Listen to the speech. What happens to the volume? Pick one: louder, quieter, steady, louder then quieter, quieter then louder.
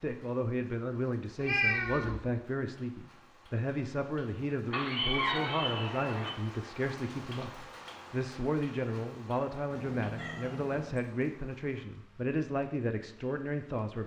steady.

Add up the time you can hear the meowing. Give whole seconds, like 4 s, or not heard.
4 s.